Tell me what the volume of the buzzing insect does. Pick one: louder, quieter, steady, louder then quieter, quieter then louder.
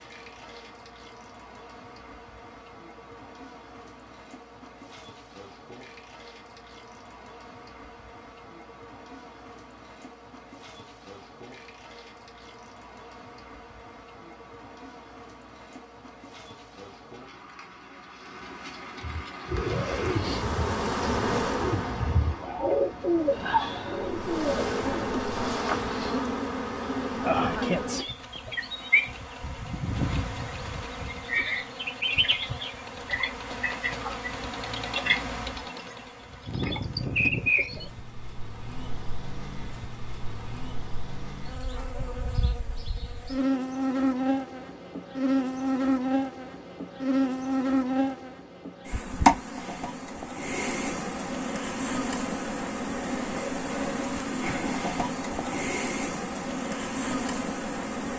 louder.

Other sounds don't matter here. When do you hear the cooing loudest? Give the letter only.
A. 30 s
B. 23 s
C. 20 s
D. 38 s
B.